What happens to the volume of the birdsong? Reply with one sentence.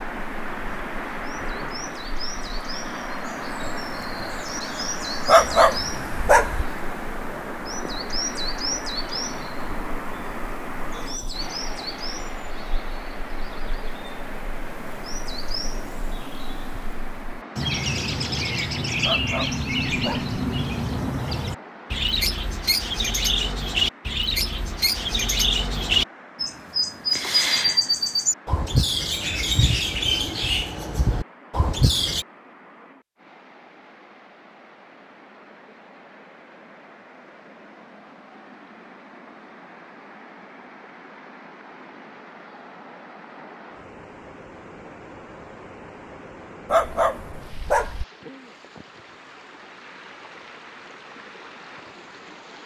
The volume of the birdsong goes up.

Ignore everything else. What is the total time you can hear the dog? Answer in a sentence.
The dog can be heard for 4 seconds in total.